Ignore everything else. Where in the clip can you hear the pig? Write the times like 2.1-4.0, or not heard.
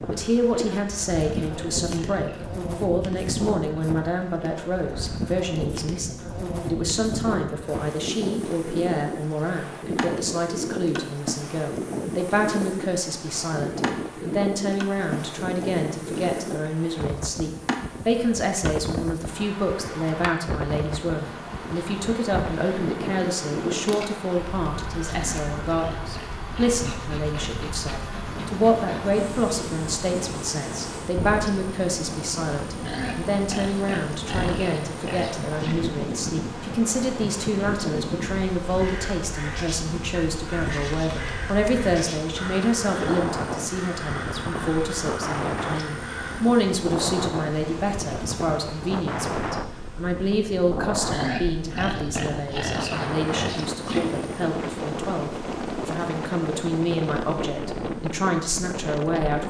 0.5-2.5, 25.1-27.6, 32.9-35.8, 51.1-54.1.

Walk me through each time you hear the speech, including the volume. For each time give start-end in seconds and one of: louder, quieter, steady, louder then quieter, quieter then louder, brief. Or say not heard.
0.1-59.4 steady.